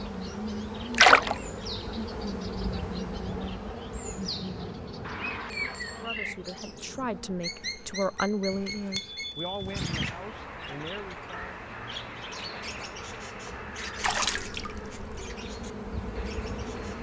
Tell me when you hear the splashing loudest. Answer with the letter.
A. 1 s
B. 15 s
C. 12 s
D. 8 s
A.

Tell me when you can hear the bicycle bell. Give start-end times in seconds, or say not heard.
5.0-6.1, 8.5-10.2.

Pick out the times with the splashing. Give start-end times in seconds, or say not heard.
0.9-1.4, 14.0-15.1.